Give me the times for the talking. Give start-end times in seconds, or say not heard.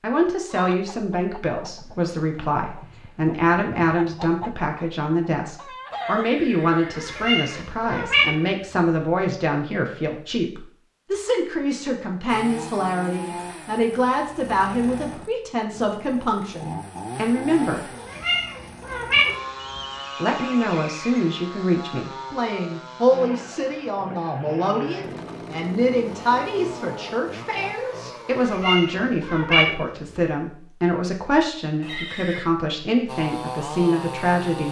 0.0-17.9, 20.1-34.6.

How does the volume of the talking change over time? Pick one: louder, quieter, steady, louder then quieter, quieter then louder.
steady.